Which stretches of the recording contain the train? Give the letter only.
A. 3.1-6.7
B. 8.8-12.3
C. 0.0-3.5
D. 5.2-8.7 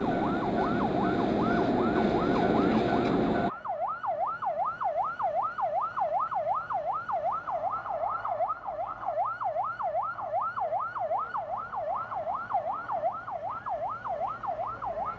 C.